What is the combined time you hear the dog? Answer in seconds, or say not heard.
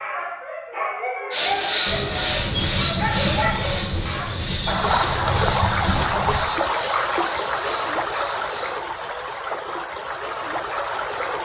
4 s.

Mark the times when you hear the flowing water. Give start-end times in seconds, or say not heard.
4.7-11.4.